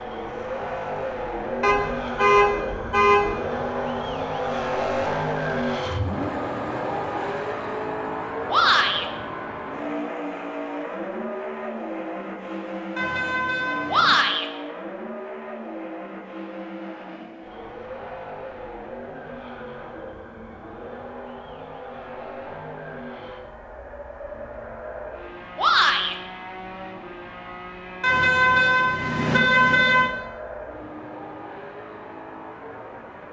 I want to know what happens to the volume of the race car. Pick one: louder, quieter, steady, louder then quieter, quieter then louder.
quieter.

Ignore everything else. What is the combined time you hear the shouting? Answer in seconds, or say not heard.
2 s.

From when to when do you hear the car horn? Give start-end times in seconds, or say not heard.
1.6-3.3, 12.9-14.2, 28.0-30.1.